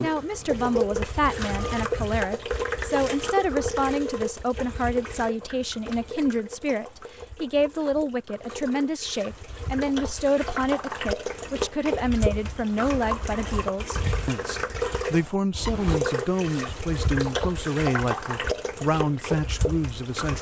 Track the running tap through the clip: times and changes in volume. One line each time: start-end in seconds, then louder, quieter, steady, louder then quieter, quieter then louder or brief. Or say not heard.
0.0-20.3 quieter then louder.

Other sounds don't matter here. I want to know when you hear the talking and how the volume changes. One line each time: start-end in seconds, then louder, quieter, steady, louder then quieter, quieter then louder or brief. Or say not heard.
0.0-20.3 steady.